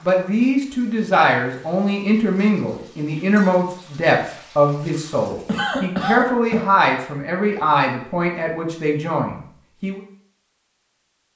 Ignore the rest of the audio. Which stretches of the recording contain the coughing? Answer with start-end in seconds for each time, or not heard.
5.5-6.7.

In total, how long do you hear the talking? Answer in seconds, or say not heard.
10 s.